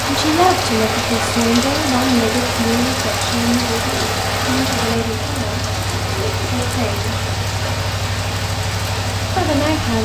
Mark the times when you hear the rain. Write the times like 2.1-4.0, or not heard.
0.0-10.0.